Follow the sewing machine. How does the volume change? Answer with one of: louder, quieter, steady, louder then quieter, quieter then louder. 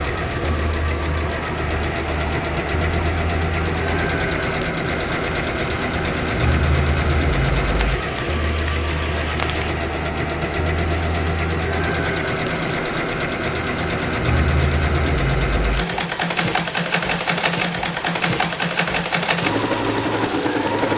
steady.